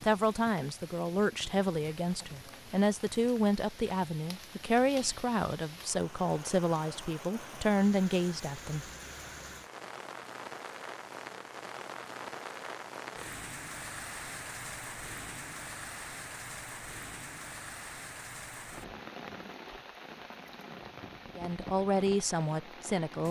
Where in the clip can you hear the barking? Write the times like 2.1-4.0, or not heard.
not heard.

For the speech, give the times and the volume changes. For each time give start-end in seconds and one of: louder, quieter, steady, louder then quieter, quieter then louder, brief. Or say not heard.
0.0-8.8 steady
21.4-23.2 brief.